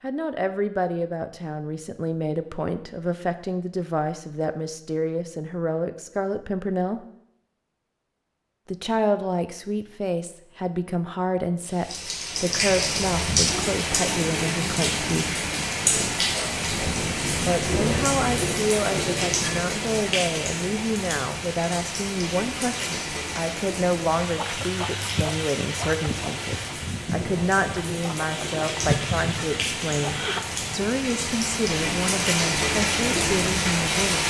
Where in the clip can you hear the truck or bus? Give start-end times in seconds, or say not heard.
not heard.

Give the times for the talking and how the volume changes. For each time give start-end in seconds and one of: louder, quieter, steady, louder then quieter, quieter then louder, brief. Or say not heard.
0.0-7.0 steady
8.7-15.2 steady
17.4-34.2 steady.